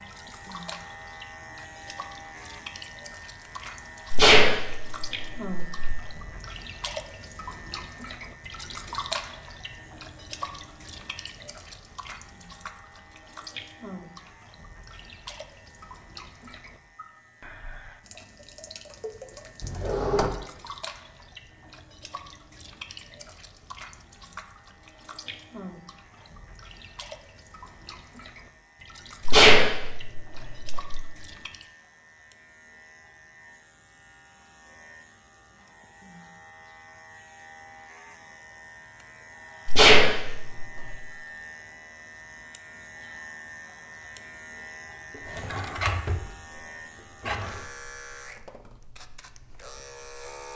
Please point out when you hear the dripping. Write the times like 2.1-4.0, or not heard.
0.0-31.7.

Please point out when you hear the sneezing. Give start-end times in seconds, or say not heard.
4.1-6.0, 29.2-31.0, 39.6-41.0.